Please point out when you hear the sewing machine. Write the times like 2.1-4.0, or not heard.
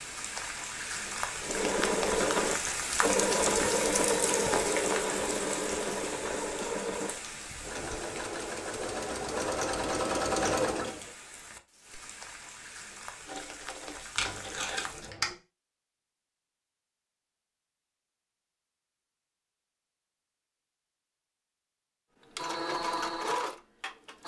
1.4-11.1, 22.4-24.2.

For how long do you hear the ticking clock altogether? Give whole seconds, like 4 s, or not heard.
not heard.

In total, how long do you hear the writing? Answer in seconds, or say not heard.
2 s.